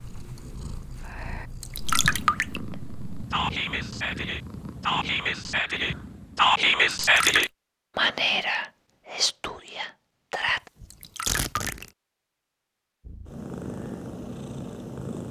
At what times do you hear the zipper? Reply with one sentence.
The zipper can be heard from 10.4 to 11.9 s.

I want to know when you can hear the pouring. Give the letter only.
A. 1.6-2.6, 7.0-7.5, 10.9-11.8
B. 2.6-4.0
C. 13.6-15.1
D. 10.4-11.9
A.